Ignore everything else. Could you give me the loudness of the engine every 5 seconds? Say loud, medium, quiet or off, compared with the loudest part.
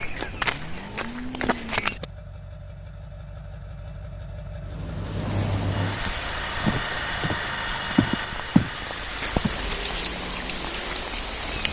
medium, loud, medium.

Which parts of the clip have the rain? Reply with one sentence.
The rain can be heard from 4.6 to 11.6 s.